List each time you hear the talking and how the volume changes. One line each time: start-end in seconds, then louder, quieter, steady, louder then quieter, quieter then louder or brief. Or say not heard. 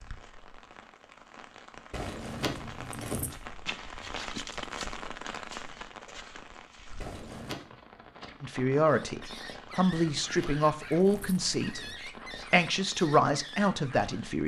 8.4-14.4 steady.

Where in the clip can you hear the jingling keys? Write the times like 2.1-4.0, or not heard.
1.9-3.3, 7.0-7.7, 10.0-11.9.